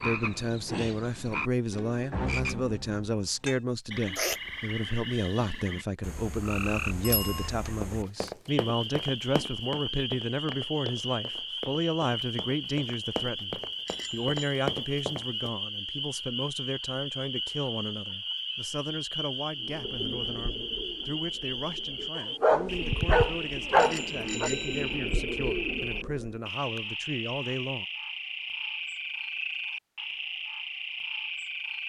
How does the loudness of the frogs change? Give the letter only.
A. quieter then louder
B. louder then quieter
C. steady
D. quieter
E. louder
C.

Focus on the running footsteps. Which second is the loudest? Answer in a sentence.
The volume of the running footsteps peaks at 15 seconds.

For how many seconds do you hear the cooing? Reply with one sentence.
You can hear the cooing for 7 seconds altogether.